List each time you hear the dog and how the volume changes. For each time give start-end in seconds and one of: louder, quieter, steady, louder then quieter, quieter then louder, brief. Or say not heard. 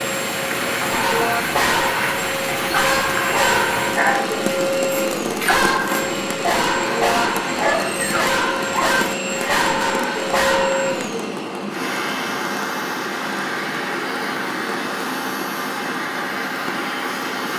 0.8-11.1 steady.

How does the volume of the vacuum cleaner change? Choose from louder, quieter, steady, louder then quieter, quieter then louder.
steady.